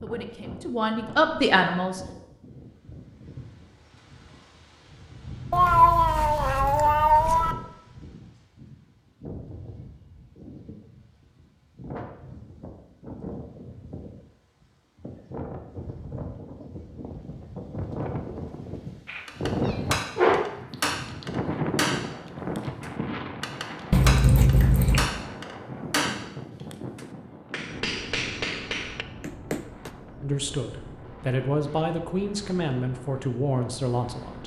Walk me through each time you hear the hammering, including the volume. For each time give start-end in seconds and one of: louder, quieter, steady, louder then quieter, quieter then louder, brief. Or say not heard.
19.2-29.9 steady.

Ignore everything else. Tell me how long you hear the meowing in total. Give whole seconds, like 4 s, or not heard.
5 s.